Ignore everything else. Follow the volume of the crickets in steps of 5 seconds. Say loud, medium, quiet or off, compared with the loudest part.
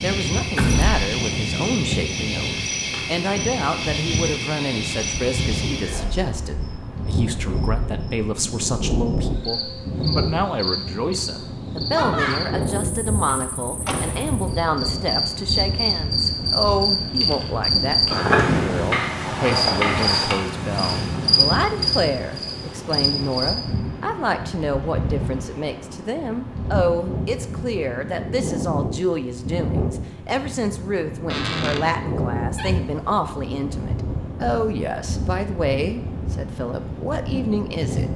medium, medium, medium, loud, loud, off, off, off.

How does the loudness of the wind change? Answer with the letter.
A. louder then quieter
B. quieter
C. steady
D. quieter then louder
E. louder
C.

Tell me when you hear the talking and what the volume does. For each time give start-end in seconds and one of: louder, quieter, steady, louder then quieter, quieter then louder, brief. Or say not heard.
0.0-38.1 steady.